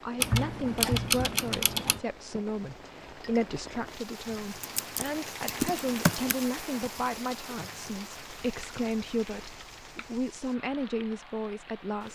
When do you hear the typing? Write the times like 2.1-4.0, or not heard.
0.1-2.0, 4.6-6.3, 8.2-10.2.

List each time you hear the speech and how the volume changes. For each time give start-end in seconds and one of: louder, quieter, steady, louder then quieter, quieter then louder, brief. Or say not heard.
0.0-12.0 steady.